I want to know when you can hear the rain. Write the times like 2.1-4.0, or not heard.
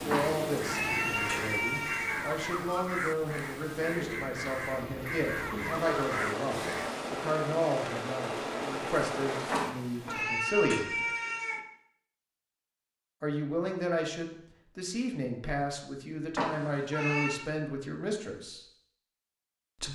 0.0-10.2.